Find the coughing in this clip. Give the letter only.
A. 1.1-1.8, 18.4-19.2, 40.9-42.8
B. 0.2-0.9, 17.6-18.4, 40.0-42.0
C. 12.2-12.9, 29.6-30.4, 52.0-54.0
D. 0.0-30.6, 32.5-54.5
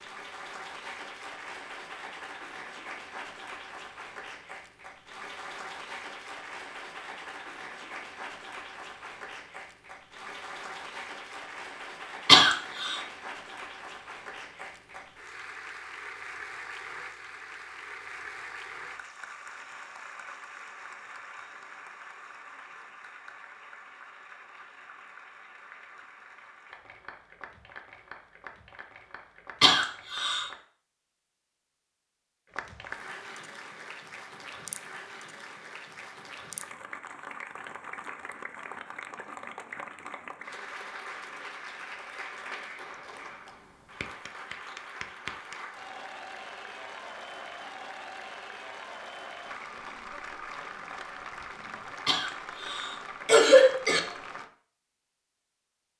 C.